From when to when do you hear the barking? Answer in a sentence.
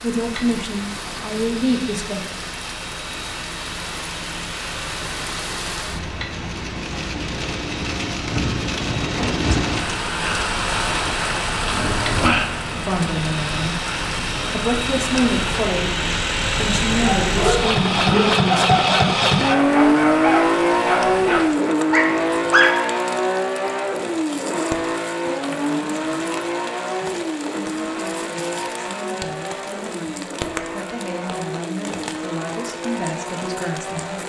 The barking can be heard from 17.1 to 22.7 s.